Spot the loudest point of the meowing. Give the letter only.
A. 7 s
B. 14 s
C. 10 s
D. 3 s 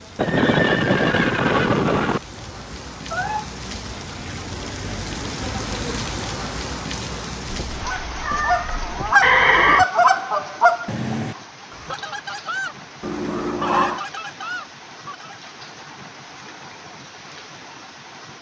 B.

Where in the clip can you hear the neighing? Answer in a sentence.
You can hear the neighing from 0.1 to 2.2 s and from 9.2 to 9.8 s.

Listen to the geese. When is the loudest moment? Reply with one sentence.
The loudest moment of the geese is at 10 seconds.